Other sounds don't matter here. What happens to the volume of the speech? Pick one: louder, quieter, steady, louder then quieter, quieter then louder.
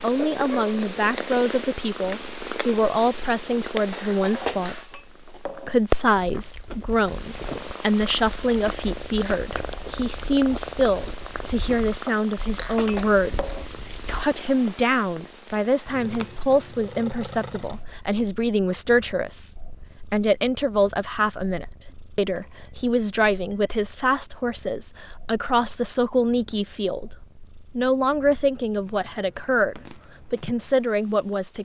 steady.